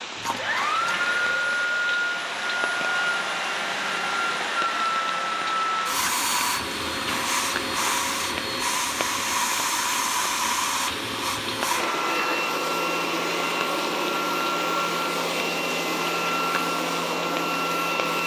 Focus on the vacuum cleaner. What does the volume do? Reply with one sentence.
The volume of the vacuum cleaner stays about the same.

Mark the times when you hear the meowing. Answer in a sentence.
The meowing can be heard from 0.1 to 1.5 s.